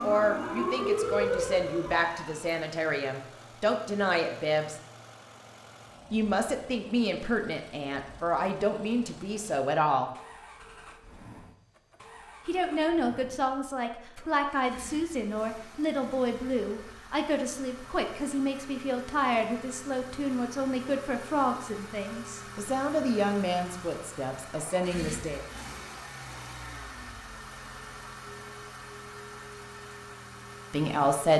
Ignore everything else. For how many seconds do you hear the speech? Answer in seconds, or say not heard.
22 s.